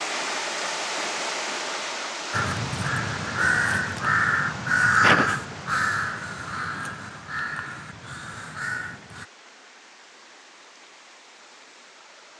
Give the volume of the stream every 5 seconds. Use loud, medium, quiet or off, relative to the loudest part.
loud, quiet, quiet.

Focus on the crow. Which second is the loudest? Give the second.
5 s.